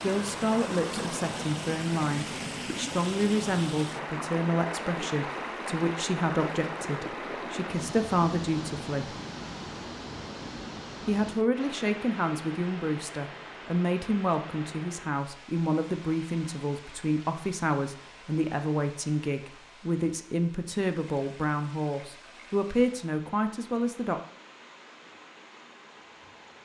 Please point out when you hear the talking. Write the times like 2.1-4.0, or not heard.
0.0-9.2, 11.1-24.2.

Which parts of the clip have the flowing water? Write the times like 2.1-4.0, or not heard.
0.0-26.6.